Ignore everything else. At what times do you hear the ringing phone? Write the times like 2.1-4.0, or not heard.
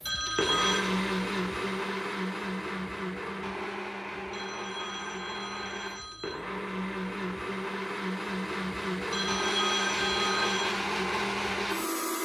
0.1-0.8, 4.3-6.3, 9.1-10.8.